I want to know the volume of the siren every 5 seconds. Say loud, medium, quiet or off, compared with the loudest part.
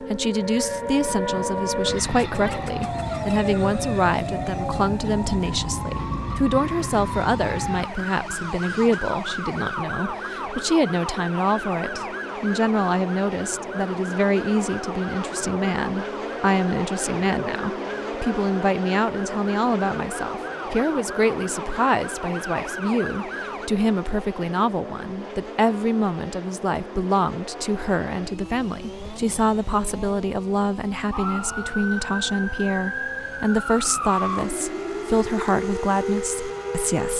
loud, loud, medium, medium, medium, off, loud, loud.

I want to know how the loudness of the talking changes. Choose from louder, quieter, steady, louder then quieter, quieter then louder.
steady.